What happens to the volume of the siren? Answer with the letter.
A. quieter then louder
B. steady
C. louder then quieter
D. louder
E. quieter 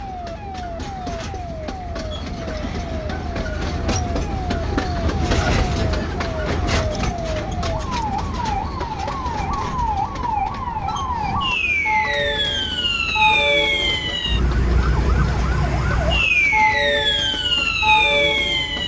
D.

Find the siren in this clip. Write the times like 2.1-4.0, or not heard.
0.0-18.8.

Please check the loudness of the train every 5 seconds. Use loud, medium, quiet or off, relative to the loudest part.
loud, loud, medium, medium.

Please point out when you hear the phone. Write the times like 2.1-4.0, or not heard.
not heard.